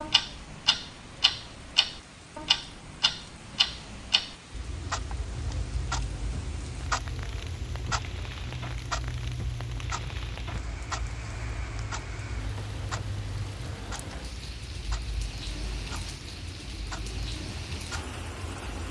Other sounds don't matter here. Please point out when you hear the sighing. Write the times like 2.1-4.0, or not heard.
not heard.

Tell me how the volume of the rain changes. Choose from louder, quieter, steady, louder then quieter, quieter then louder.
louder.